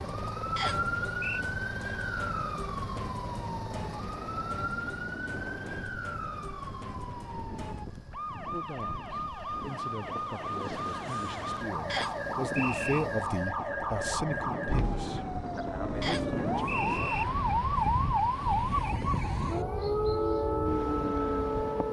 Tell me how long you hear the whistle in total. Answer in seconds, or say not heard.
3 s.